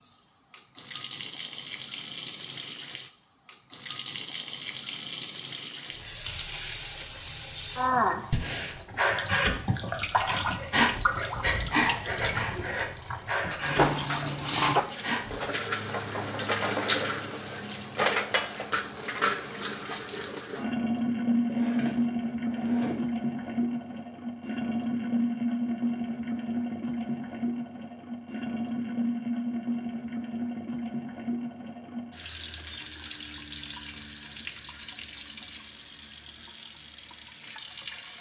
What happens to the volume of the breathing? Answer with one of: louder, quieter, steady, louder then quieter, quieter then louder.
quieter.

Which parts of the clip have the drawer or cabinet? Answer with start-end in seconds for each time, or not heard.
21.4-23.1.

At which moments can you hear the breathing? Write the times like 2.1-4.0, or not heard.
8.3-15.5.